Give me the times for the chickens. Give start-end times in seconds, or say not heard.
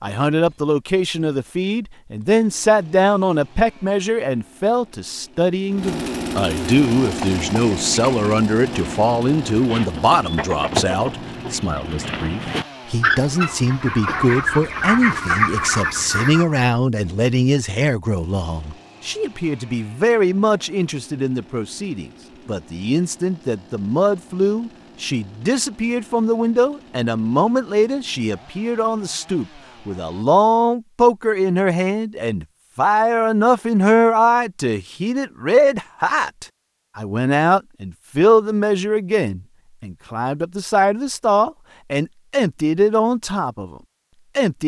7.0-16.6.